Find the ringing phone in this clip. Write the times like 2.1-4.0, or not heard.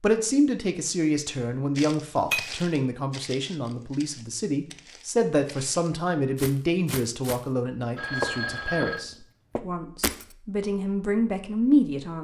8.0-9.1.